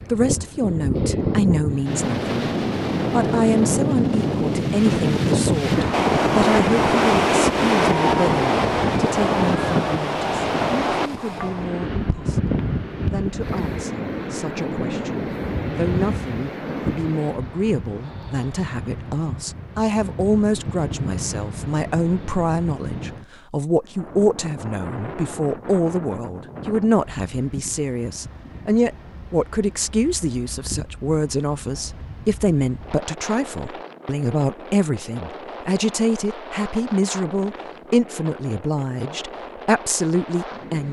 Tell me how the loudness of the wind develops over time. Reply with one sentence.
The volume of the wind goes down.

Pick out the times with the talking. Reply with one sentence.
You can hear the talking from 0.1 to 2.5 s and from 3.1 to 40.8 s.